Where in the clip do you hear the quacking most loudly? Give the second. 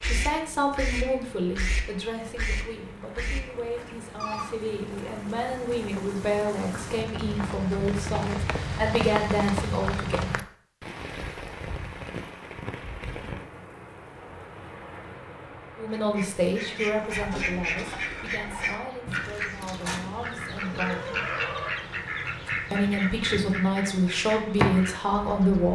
25 s.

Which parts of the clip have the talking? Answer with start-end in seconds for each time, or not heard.
0.0-10.4, 15.8-21.2, 22.7-25.7.